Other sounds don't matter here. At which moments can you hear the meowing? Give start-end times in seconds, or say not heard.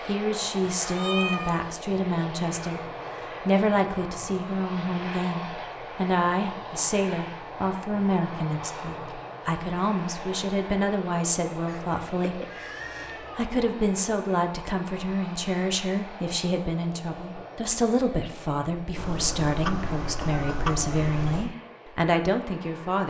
0.8-1.6, 11.7-13.4, 18.9-21.5.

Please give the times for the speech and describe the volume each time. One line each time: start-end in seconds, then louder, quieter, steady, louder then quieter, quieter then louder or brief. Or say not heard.
0.1-23.0 steady.